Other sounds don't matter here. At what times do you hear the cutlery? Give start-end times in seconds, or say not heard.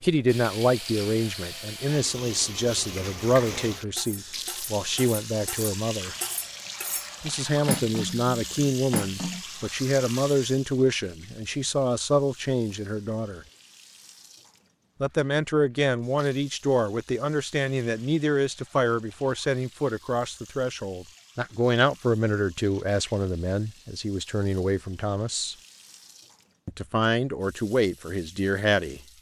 3.0-9.4.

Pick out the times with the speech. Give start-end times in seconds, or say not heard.
0.0-6.2, 7.2-13.4, 15.0-25.6, 26.6-29.0.